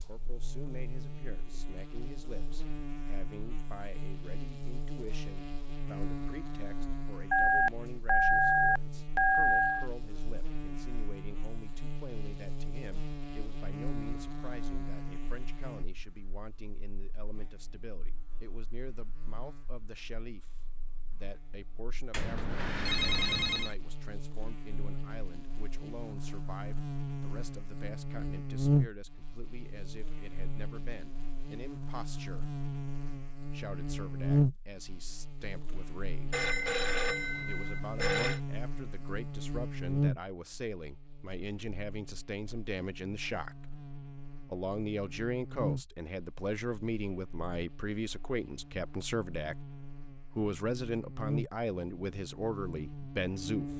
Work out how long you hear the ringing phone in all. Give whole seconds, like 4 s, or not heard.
6 s.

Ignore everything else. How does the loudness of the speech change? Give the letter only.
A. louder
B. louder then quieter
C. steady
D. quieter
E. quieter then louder
A.